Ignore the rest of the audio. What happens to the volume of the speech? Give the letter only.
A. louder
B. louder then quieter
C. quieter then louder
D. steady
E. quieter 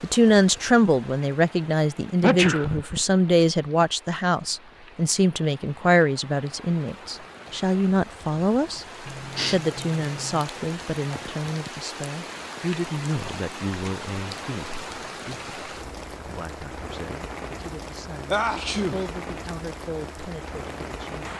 E.